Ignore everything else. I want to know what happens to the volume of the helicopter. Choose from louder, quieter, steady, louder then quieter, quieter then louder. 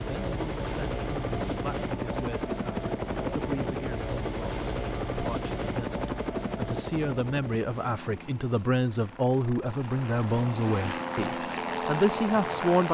quieter then louder.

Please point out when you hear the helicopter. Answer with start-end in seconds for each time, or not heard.
0.0-12.8.